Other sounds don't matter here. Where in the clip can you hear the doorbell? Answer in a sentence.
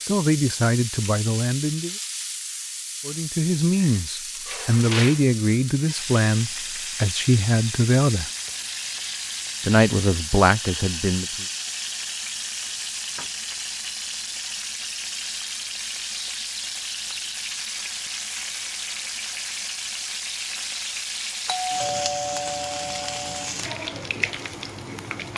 The doorbell can be heard from 21.4 to 23.6 s.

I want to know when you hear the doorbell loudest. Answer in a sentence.
The volume of the doorbell peaks at 22 seconds.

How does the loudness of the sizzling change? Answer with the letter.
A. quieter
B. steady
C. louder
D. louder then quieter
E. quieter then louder
B.